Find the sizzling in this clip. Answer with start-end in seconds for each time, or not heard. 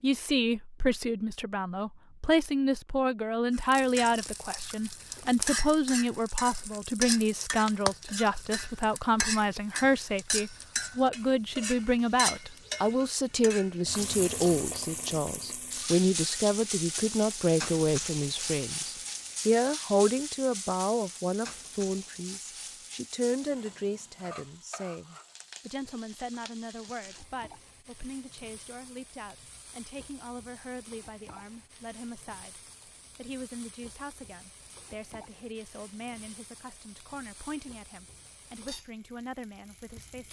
3.5-40.2.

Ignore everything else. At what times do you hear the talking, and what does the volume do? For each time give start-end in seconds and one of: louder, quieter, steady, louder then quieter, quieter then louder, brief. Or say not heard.
0.0-40.2 quieter.